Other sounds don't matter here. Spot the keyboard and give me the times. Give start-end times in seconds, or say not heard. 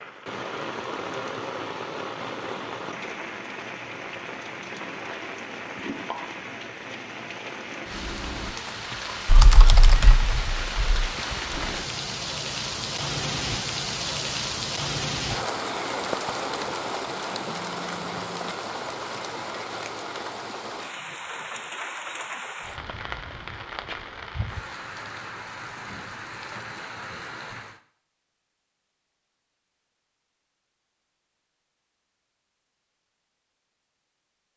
9.2-11.1.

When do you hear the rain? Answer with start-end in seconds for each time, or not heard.
0.0-27.8.